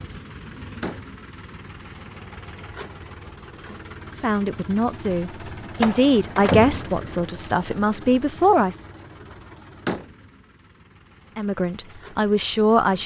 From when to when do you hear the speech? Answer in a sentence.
The speech can be heard from 4.2 to 8.8 s and from 11.3 to 13.0 s.